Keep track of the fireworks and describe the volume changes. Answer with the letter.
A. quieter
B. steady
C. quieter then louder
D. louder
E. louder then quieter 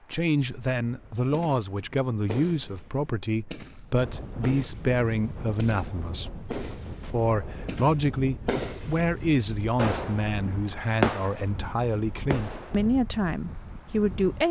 D.